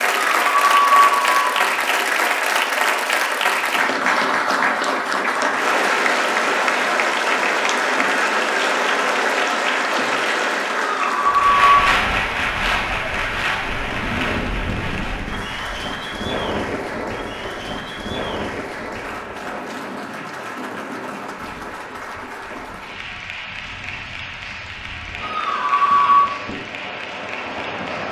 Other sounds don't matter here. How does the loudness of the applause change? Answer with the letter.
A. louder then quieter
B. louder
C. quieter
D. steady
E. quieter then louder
C.